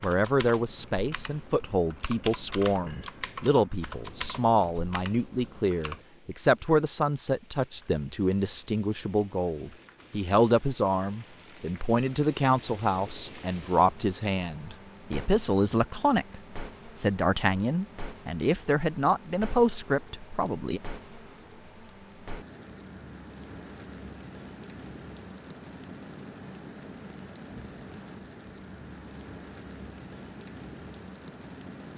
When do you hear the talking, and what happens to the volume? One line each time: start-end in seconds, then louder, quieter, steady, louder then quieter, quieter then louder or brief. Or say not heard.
0.0-20.8 steady.